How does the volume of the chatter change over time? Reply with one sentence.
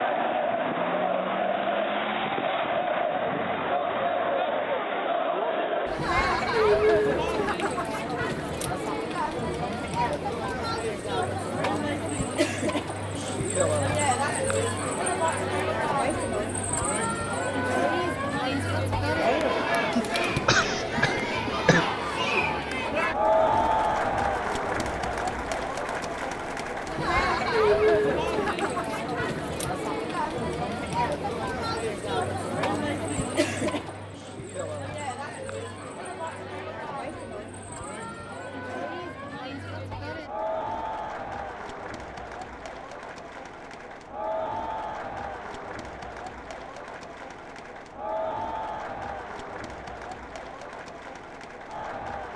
The volume of the chatter goes down.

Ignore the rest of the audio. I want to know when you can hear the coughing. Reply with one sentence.
The coughing can be heard from 19.9 to 21.9 s.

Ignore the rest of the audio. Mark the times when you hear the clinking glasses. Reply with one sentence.
You can't hear the clinking glasses here.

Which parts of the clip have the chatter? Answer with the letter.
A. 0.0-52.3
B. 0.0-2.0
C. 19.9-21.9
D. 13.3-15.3
A.